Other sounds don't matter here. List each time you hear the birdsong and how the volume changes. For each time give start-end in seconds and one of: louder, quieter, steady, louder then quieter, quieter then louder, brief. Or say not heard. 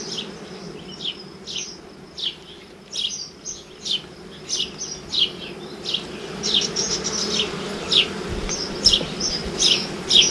0.0-10.2 louder.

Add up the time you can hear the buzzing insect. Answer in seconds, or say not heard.
10 s.